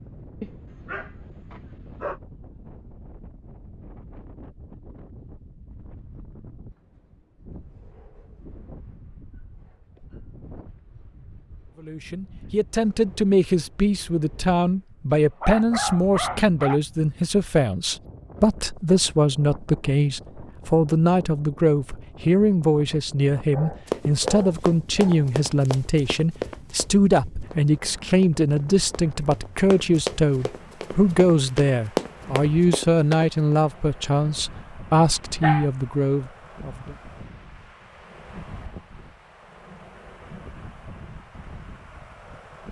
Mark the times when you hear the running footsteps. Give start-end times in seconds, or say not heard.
23.9-33.5.